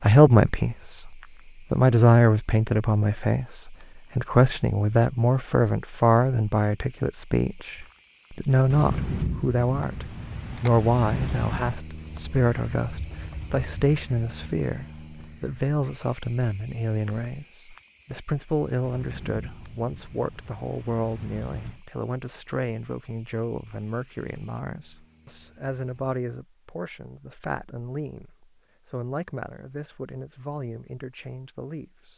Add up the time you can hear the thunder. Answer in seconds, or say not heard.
6 s.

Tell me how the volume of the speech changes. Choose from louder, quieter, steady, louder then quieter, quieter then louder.
quieter.